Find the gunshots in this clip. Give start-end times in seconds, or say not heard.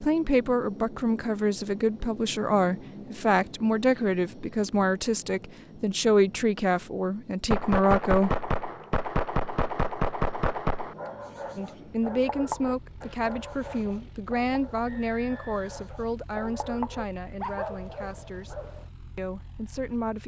7.5-10.9.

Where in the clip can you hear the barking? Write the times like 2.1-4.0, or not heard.
10.9-18.9.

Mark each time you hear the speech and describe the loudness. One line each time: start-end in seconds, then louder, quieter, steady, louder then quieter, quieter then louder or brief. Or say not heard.
0.0-8.5 steady
11.6-20.2 quieter.